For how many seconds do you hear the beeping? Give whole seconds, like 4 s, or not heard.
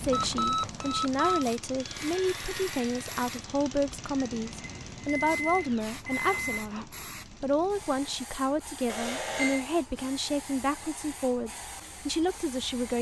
4 s.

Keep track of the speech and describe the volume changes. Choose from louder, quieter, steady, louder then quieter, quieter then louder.
steady.